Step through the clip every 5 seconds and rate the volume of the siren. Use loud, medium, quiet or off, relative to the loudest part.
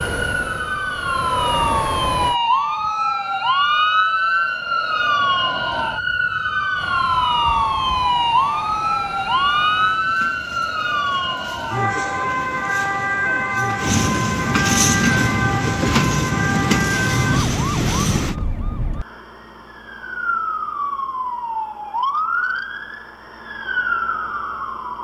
loud, loud, loud, medium, medium.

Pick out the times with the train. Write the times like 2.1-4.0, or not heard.
0.0-2.4, 6.8-18.4.